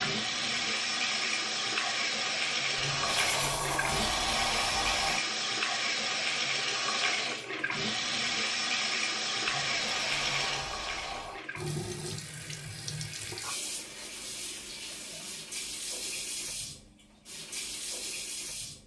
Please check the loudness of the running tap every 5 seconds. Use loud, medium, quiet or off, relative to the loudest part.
loud, loud, medium, medium.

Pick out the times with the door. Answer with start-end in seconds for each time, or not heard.
2.8-5.2, 9.4-11.4.